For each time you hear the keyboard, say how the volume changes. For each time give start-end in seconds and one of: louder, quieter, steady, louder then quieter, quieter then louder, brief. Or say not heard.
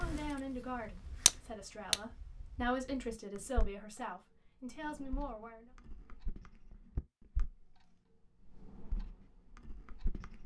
not heard.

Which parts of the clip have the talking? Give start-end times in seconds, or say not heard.
0.0-5.7.